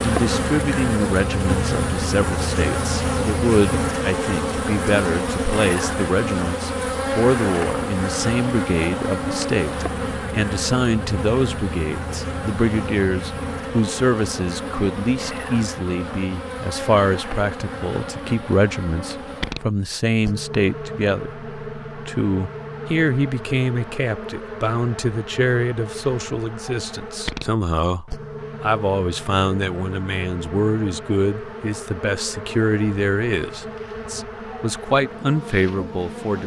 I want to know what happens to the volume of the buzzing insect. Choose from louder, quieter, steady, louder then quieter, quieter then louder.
quieter.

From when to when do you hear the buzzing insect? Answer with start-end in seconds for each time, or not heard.
0.0-36.4.